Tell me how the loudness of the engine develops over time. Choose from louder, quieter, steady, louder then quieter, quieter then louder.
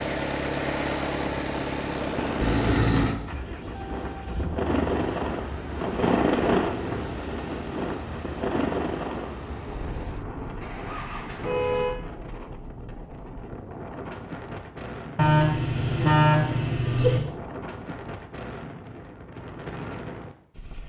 quieter.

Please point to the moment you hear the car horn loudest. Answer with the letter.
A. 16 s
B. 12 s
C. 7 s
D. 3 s
A.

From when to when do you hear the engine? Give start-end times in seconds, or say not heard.
0.0-11.9.